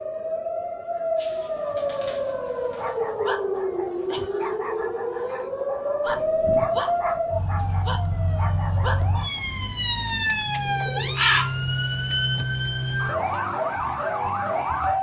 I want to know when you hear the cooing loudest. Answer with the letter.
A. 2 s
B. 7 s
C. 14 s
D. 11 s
D.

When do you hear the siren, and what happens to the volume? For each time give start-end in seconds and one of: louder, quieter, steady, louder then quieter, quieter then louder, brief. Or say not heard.
0.0-14.9 steady.